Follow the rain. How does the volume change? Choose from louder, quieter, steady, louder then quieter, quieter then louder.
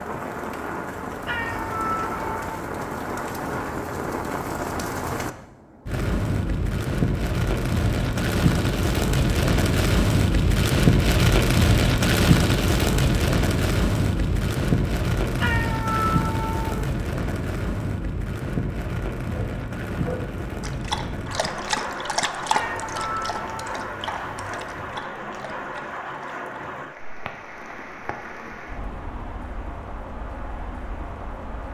louder then quieter.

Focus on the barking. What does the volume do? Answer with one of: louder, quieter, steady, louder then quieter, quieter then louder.
quieter.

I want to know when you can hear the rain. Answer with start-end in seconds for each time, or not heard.
0.0-31.6.